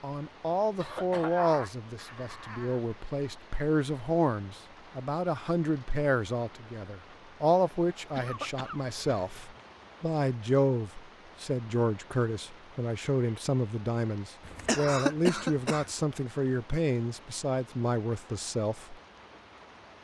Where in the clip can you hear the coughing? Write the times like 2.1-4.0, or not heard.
0.8-2.8, 8.1-9.7, 14.4-15.9.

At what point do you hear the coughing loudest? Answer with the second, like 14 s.
15 s.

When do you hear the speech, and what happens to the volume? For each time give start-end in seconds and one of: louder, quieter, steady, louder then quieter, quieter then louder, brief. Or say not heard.
0.0-18.9 steady.